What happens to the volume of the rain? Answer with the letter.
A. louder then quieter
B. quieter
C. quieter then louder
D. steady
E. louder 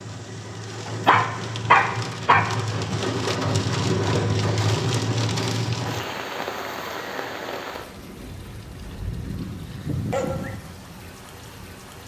A.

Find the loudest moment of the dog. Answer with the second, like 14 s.
2 s.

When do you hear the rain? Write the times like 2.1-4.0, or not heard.
0.0-12.0.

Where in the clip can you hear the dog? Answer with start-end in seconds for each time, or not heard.
1.1-2.5, 9.1-10.6.